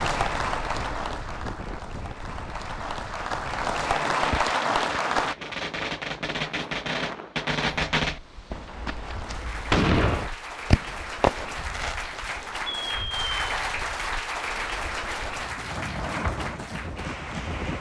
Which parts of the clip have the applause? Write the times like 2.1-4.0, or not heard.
0.0-5.3, 9.0-17.7.